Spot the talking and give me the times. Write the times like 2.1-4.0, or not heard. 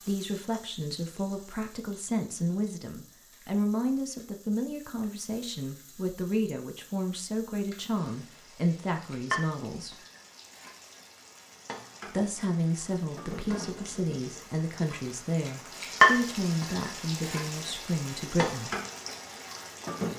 0.0-10.0, 12.1-18.8.